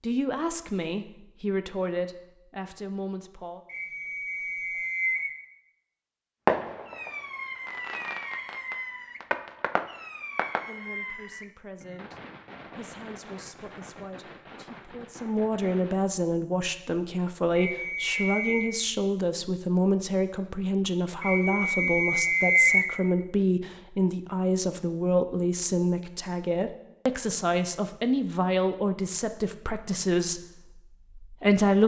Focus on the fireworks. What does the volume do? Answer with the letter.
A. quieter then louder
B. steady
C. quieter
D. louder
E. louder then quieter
C.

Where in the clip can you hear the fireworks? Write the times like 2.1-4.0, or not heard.
6.5-16.1.